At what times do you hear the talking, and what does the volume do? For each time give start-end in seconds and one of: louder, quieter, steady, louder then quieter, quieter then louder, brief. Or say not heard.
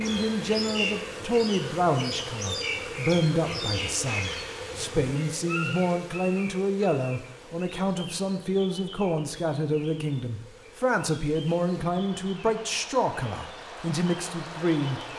0.0-15.0 steady.